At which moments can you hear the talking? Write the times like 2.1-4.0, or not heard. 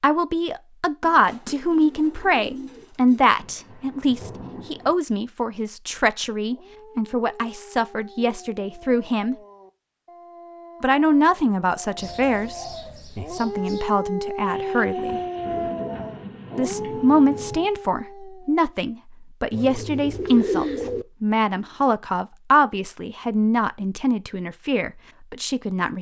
0.0-9.3, 10.8-12.7, 13.3-15.2, 16.6-25.9.